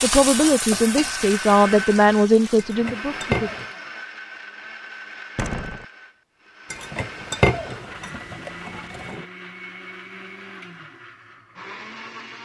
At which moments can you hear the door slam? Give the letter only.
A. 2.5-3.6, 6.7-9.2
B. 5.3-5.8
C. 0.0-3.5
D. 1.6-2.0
B.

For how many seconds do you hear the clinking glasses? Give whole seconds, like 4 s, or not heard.
4 s.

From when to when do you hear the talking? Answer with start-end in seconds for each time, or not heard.
0.0-3.5.